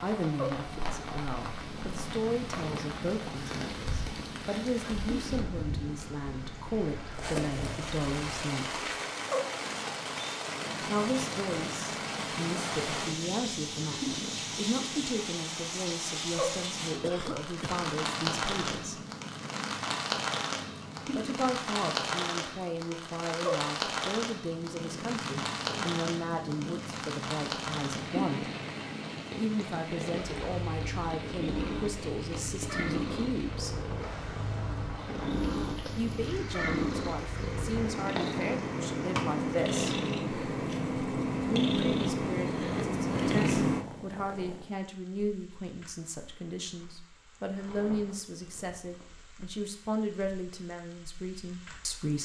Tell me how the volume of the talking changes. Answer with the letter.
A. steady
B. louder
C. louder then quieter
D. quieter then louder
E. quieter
A.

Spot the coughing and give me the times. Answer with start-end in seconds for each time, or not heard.
17.0-17.9.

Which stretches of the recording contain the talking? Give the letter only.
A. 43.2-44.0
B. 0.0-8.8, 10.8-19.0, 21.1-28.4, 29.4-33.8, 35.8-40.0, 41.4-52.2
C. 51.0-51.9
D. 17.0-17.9
B.